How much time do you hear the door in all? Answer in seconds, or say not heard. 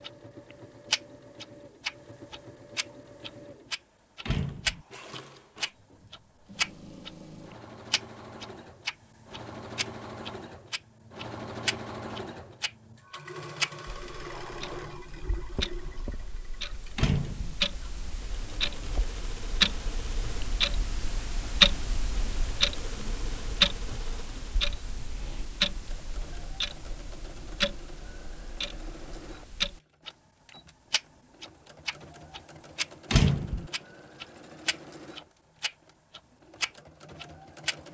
2 s.